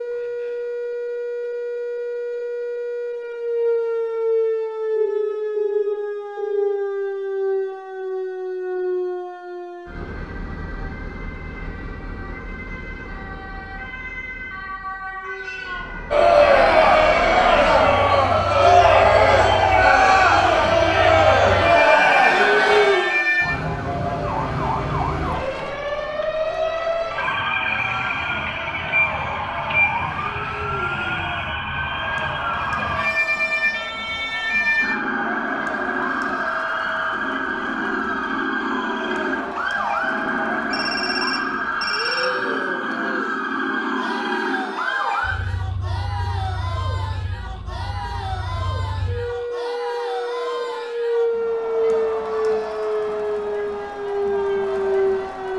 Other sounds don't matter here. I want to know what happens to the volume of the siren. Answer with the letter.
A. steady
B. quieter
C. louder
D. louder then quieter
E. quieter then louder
E.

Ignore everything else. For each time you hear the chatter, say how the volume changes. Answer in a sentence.
You can hear the chatter from 16.1 to 55.5 s, getting quieter.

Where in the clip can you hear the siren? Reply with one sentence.
The siren can be heard from 0.0 to 55.5 s.